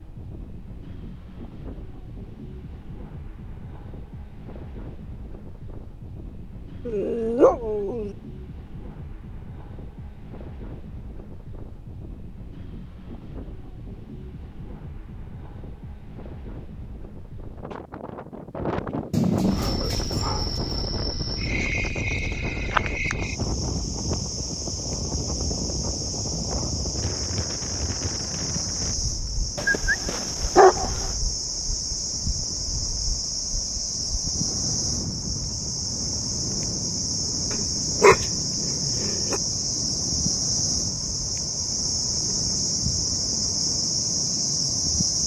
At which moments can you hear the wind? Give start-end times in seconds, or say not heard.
0.0-45.2.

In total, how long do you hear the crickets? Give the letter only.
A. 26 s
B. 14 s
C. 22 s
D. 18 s
A.